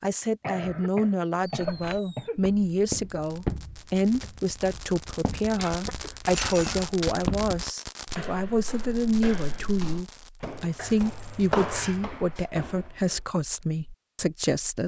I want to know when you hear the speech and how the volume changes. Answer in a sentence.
The speech can be heard from 0.0 to 14.8 s, at a steady volume.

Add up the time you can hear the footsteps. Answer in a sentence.
The footsteps can be heard for 12 seconds in total.